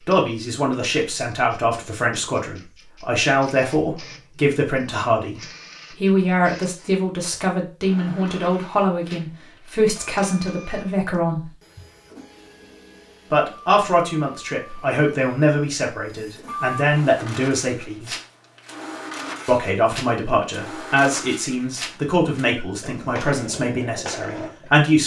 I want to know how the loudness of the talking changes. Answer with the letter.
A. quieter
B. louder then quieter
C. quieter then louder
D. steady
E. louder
D.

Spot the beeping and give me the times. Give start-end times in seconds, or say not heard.
not heard.